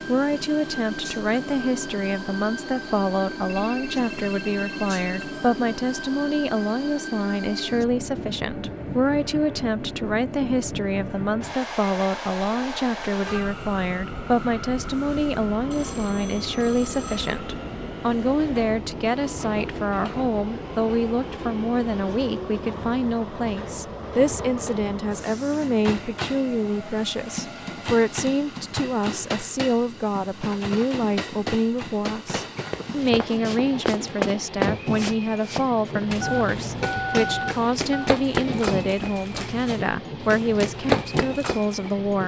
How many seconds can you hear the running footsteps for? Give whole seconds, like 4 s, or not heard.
9 s.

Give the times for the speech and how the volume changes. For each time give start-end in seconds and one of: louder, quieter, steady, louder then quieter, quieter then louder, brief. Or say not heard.
0.1-42.2 steady.